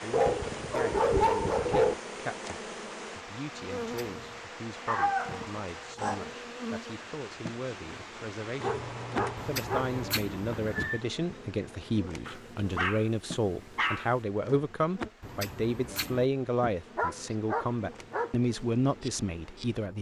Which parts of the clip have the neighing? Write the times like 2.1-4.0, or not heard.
3.8-4.5, 9.3-11.0, 15.2-16.3.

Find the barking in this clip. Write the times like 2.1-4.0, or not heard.
0.1-1.9, 4.8-6.3, 8.6-10.2, 12.2-14.1, 16.9-18.3.